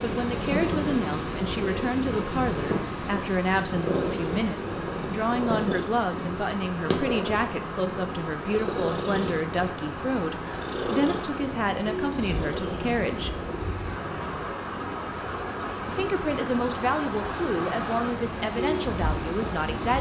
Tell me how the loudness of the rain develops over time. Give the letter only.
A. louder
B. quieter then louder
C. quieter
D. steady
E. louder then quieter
A.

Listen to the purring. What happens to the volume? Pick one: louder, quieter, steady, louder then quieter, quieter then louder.
quieter.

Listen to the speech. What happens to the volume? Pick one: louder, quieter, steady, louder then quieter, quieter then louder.
steady.